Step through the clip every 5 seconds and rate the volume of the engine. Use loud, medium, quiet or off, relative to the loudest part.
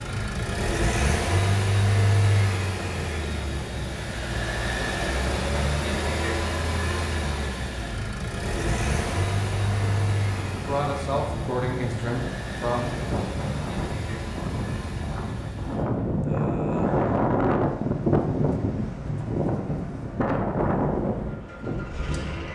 loud, loud, medium, quiet, medium.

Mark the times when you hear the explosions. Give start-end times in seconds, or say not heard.
not heard.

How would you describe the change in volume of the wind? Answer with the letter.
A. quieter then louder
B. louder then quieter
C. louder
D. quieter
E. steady
C.